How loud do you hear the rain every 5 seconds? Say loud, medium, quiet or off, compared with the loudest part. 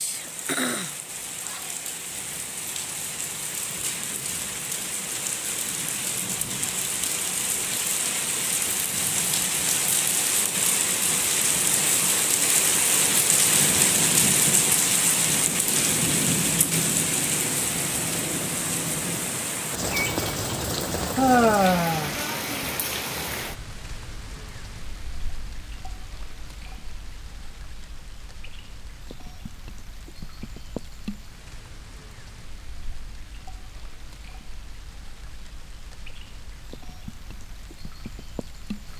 medium, medium, loud, loud, medium, quiet, quiet, quiet.